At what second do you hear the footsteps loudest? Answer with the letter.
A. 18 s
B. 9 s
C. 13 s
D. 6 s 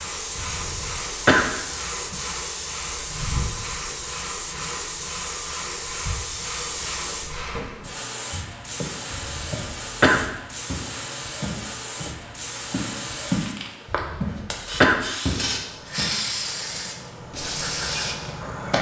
C.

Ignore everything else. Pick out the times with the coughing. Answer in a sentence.
You can hear the coughing from 0.3 to 1.5 s, from 9.1 to 10.2 s and from 13.9 to 15.1 s.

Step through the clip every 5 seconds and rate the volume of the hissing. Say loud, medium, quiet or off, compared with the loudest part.
loud, loud, medium, loud.